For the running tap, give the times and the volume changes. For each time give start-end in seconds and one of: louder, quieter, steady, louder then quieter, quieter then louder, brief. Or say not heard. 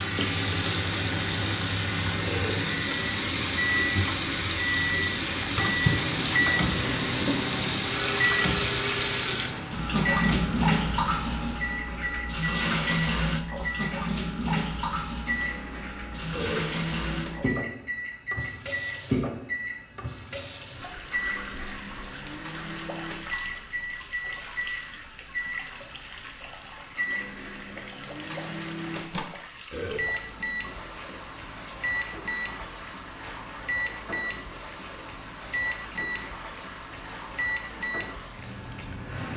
0.0-39.3 quieter.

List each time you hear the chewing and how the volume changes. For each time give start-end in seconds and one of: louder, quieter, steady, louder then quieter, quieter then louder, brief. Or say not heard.
not heard.